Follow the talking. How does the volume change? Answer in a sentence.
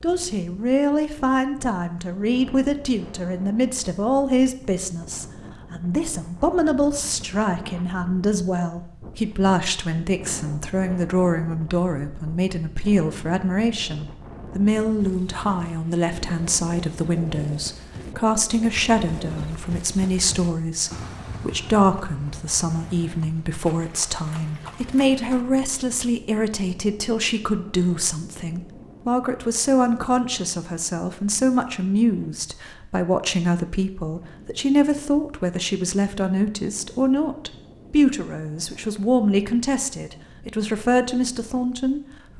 The volume of the talking stays about the same.